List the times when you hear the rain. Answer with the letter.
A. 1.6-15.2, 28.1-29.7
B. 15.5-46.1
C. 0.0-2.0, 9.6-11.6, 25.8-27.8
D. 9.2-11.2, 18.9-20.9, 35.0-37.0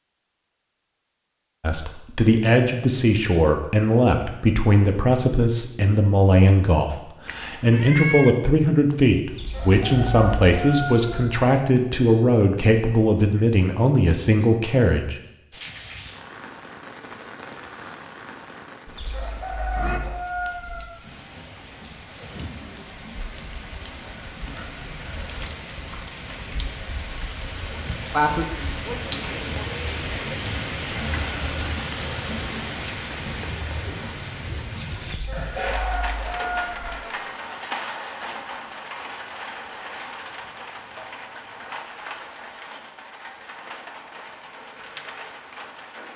B.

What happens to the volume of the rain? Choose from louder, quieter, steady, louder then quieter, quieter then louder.
louder then quieter.